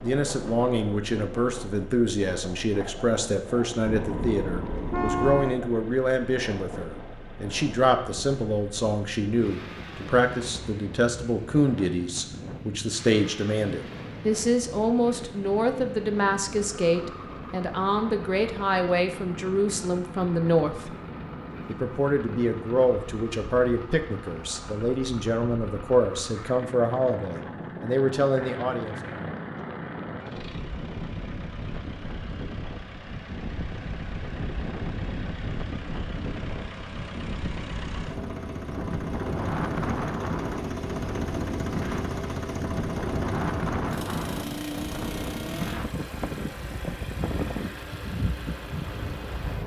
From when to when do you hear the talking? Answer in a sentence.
The talking can be heard from 0.0 to 20.9 s and from 21.6 to 28.9 s.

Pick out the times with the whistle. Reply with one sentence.
You can't hear the whistle here.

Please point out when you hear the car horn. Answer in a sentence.
The car horn can be heard from 3.9 to 5.6 s.